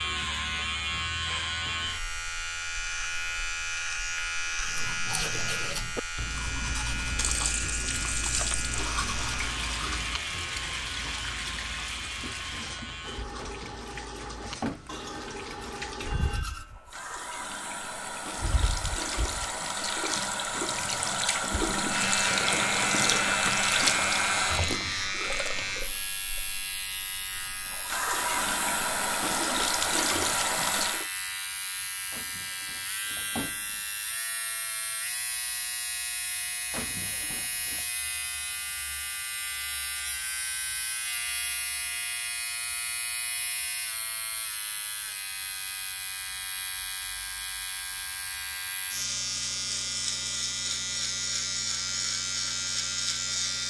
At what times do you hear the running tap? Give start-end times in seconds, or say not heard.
7.0-31.1.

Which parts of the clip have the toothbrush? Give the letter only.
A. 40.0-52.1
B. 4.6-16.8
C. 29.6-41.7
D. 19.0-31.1
B.